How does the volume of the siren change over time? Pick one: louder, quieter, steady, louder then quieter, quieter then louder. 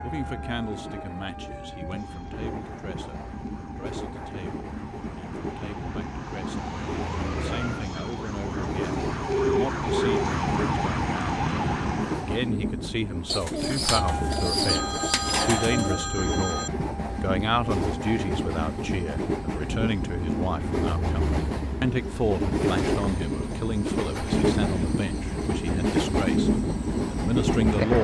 louder.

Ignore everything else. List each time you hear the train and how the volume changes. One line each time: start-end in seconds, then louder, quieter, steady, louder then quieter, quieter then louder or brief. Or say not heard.
0.0-28.0 louder.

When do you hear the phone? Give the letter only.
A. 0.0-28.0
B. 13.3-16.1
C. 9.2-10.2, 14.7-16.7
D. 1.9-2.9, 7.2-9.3
C.